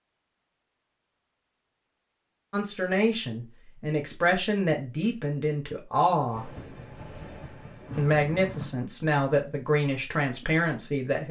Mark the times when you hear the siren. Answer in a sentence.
You can't hear the siren here.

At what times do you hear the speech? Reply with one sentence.
The speech can be heard from 2.5 to 6.5 s and from 8.0 to 11.2 s.